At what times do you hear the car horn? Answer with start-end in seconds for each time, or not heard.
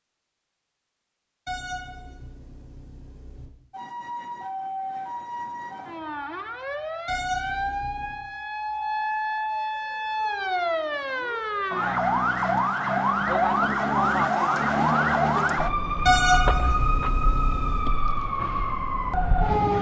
1.4-3.5, 7.0-8.2, 16.1-17.9.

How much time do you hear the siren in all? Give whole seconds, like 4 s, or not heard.
16 s.